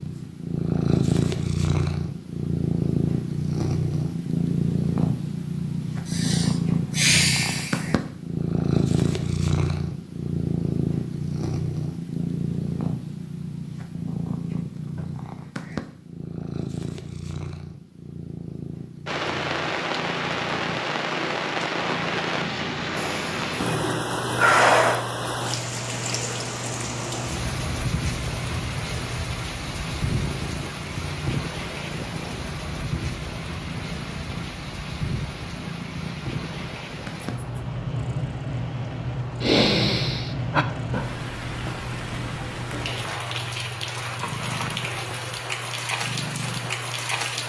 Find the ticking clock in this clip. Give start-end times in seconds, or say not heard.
not heard.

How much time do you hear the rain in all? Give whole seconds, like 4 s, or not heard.
28 s.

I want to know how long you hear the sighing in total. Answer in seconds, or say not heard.
5 s.